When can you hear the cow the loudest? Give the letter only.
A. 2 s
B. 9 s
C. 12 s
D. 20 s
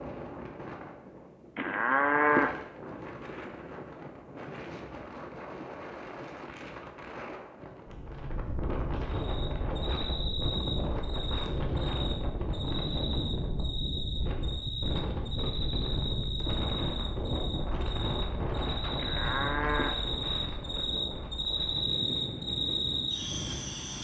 A.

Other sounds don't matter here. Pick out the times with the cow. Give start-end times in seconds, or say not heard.
1.6-2.5, 18.9-19.9.